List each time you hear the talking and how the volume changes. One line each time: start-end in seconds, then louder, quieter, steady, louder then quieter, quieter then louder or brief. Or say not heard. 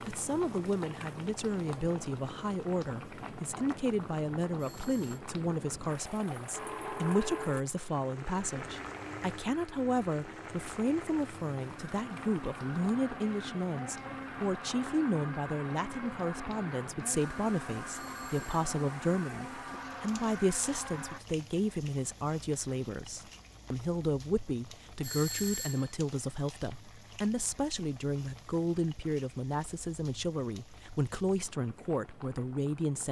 0.1-33.0 steady.